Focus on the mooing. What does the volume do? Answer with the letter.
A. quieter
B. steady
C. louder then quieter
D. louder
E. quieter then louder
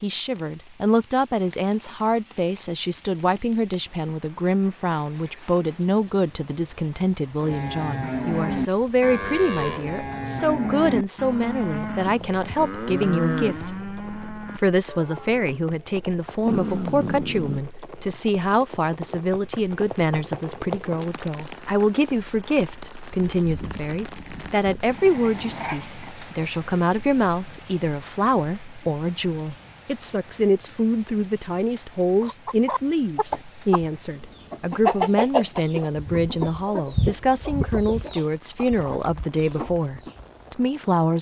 A.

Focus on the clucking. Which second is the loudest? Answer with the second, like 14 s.
35 s.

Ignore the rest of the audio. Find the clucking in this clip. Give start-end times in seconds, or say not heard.
32.2-33.9, 34.5-40.2.